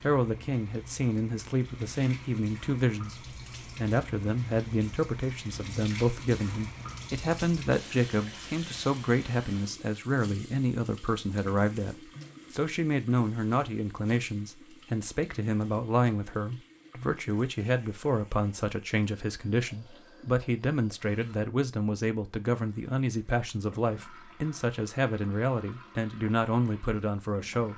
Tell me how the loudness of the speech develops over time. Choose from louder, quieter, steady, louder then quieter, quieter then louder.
steady.